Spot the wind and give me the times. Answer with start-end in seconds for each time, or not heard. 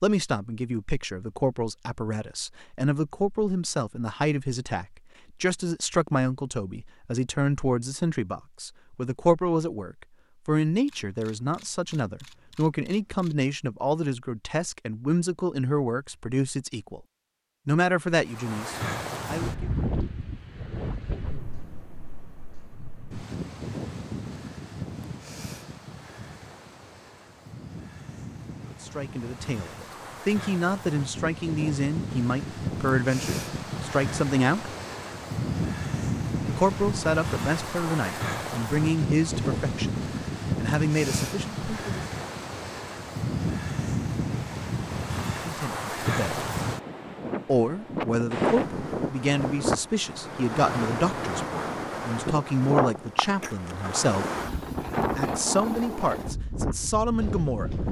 18.2-57.8.